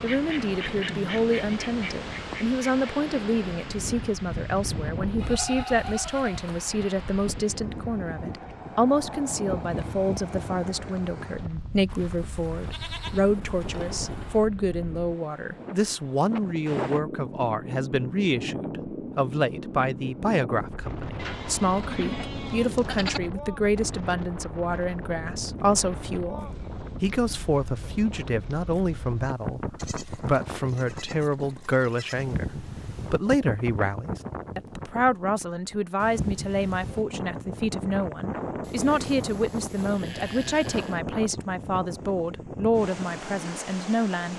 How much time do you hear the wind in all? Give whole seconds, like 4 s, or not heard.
44 s.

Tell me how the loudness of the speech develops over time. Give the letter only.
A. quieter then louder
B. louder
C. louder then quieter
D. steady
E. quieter
D.